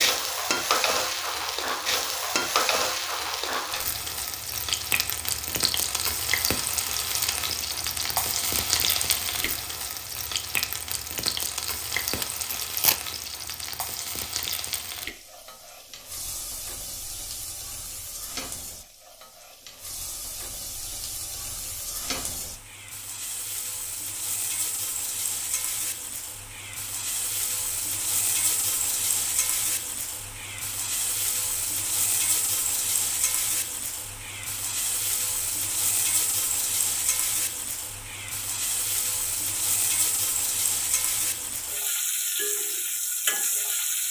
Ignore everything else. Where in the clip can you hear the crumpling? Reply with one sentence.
You can hear the crumpling from 11.9 to 13.0 s.